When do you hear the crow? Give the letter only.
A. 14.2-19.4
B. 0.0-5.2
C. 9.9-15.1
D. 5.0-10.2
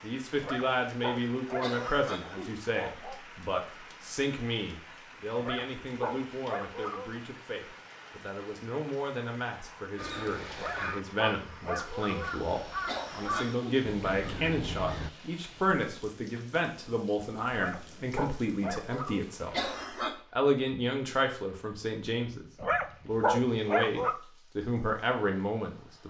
C.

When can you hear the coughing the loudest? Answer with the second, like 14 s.
20 s.